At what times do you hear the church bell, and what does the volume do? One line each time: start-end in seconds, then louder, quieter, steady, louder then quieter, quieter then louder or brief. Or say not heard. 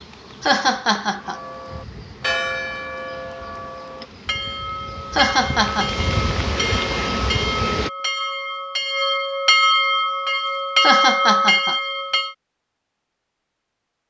1.2-12.3 louder.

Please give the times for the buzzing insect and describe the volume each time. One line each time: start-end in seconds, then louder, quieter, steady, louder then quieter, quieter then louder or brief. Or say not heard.
0.0-7.9 louder.